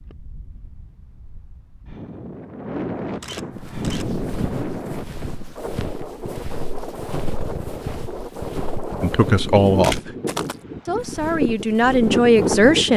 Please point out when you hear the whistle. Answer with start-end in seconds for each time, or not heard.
not heard.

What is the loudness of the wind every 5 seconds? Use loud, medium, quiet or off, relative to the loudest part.
medium, medium, loud.